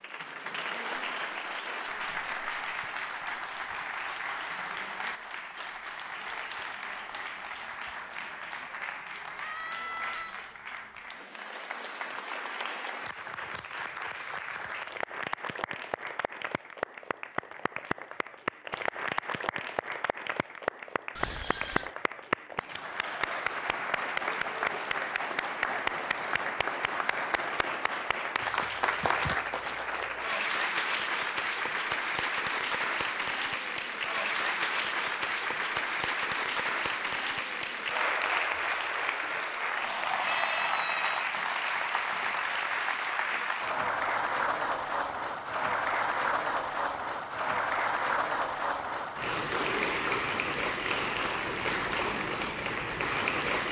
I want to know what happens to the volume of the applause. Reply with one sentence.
The loudness of the applause goes up.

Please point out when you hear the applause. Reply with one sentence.
You can hear the applause from 0.0 to 53.6 s.